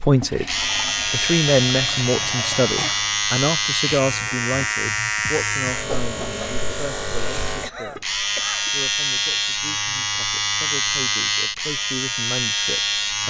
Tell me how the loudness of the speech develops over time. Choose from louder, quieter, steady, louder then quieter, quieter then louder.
quieter then louder.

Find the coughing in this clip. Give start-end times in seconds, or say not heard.
2.8-3.2, 7.6-8.7.